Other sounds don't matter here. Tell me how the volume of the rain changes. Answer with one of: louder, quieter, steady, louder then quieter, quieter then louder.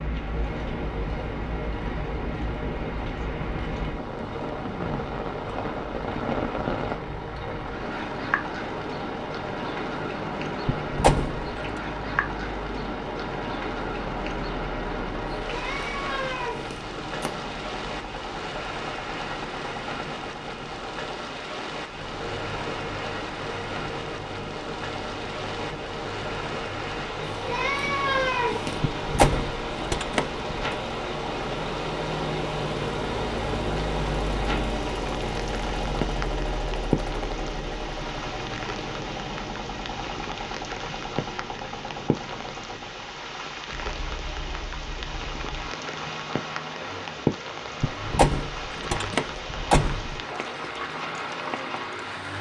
steady.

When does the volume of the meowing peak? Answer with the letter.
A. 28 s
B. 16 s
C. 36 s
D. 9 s
A.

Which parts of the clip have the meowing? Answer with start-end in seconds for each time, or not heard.
15.4-17.3, 27.3-29.2.